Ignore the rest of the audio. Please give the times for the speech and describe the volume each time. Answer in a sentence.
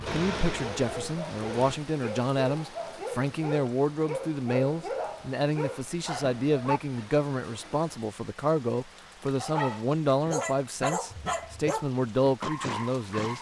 The speech can be heard from 0.0 to 13.3 s, at a steady volume.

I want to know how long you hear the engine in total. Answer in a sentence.
You can hear the engine for 2 seconds altogether.